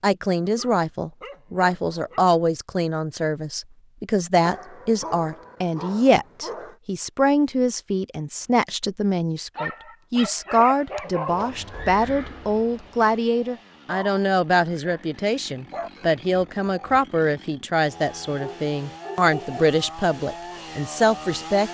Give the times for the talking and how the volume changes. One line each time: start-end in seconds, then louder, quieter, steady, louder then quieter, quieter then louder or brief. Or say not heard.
0.0-21.6 steady.